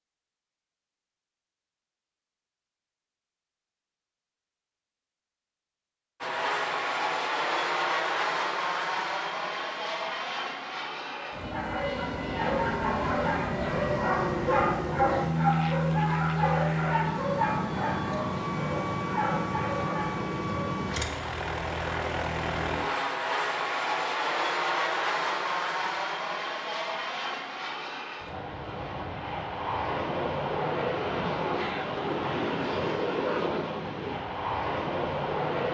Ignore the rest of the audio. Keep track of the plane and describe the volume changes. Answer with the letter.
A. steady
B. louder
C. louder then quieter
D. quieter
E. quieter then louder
A.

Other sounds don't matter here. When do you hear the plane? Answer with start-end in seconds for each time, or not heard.
6.2-35.6.